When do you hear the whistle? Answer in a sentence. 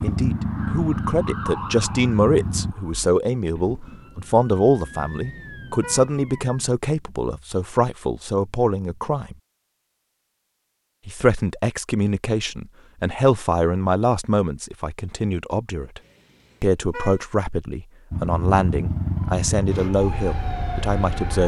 The whistle can't be heard in this clip.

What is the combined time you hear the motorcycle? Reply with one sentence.
You can hear the motorcycle for 6 seconds altogether.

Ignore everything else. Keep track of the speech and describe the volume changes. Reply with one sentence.
The loudness of the speech stays about the same.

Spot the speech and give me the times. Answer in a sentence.
You can hear the speech from 0.0 to 9.3 s, from 11.1 to 16.0 s and from 16.6 to 21.4 s.